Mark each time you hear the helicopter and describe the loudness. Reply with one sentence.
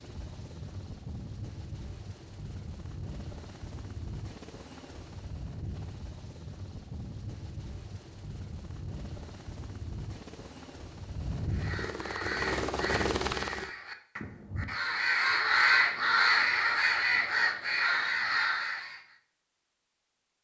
The helicopter can be heard from 0.0 to 13.7 s, getting louder.